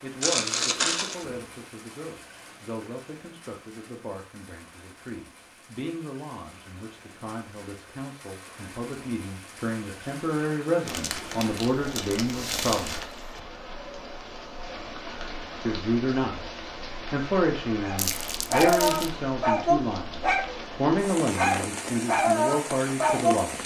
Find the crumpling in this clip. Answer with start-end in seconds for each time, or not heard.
0.2-1.2, 10.8-13.1, 17.9-19.1.